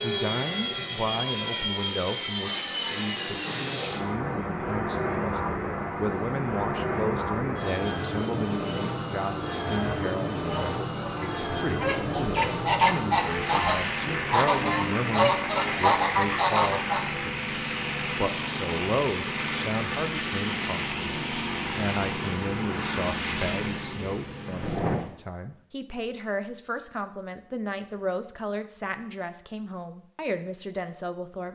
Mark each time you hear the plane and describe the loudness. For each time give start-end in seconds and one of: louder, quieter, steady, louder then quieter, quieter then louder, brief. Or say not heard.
0.0-25.1 steady.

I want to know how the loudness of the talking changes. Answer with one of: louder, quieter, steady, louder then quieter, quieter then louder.
steady.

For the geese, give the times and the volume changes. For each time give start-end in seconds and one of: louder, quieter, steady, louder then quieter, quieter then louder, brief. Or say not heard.
9.7-17.1 louder.